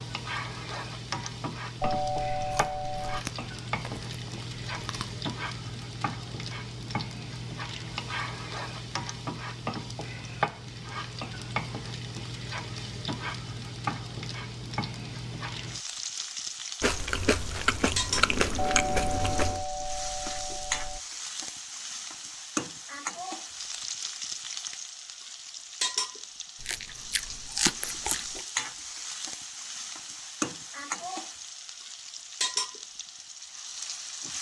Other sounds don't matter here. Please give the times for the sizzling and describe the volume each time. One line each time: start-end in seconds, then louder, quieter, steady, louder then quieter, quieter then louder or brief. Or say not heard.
0.0-34.3 steady.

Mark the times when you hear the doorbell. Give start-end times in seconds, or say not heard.
1.8-3.2, 18.6-21.0.